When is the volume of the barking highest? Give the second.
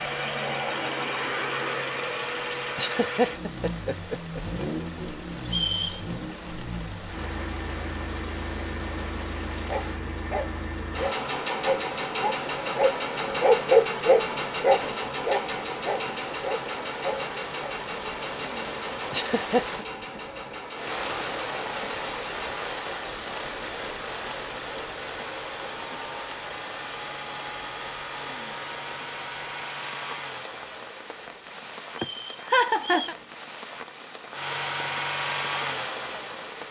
14 s.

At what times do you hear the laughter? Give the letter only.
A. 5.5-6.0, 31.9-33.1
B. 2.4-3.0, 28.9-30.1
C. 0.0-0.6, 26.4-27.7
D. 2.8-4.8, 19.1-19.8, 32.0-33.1
D.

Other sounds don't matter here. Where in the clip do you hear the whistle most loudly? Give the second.
6 s.